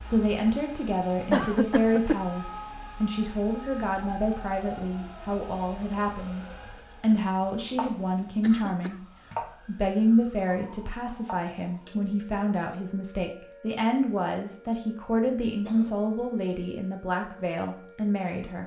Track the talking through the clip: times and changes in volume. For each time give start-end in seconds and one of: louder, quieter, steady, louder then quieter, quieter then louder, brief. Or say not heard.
0.0-18.6 steady.